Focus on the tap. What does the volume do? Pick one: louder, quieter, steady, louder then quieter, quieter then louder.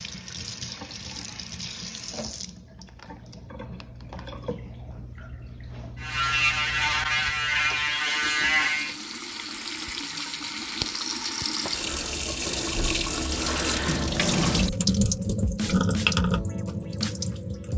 louder.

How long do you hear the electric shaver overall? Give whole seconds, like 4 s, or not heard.
3 s.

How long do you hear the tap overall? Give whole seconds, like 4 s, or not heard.
18 s.